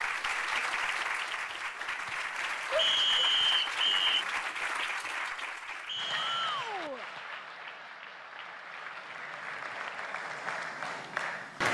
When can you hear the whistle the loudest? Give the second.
3 s.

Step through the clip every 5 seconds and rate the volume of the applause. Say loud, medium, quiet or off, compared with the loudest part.
loud, medium, loud.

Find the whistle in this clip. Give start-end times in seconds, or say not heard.
2.8-4.2, 5.8-6.5.